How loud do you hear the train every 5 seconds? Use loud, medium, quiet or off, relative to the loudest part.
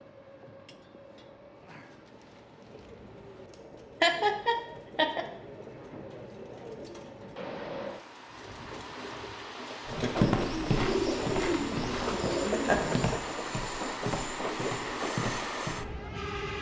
quiet, medium, loud, loud.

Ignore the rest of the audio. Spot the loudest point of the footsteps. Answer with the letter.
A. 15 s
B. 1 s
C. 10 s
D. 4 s
C.